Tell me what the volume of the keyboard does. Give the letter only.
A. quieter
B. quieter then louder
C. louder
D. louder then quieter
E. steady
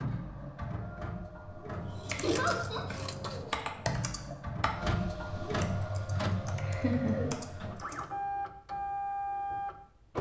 D.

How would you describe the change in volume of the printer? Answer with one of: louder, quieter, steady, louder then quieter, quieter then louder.
louder.